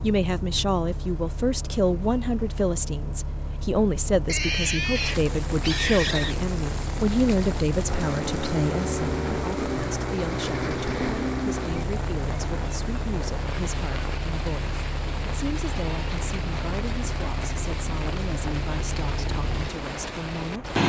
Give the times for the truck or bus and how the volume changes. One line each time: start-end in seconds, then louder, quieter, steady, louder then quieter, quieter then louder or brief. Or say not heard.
0.0-20.8 louder then quieter.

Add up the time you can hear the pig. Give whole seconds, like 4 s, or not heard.
2 s.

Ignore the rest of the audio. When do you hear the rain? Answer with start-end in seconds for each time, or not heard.
4.8-20.8.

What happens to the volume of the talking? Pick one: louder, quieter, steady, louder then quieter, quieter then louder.
quieter.